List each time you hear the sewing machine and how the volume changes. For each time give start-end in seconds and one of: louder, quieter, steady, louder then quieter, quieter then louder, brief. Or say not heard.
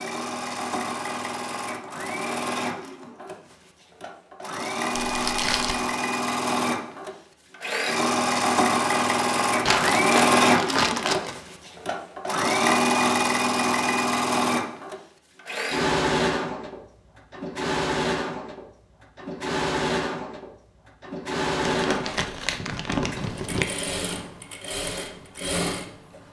0.0-26.2 louder then quieter.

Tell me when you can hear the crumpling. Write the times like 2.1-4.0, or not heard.
5.0-5.8, 9.7-11.3, 21.6-23.6.